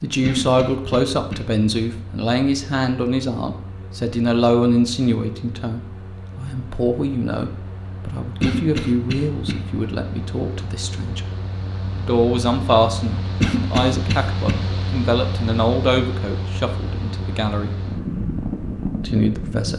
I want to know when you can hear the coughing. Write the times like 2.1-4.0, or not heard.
0.2-1.4, 8.4-9.6, 13.4-14.6.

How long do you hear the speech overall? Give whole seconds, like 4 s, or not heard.
18 s.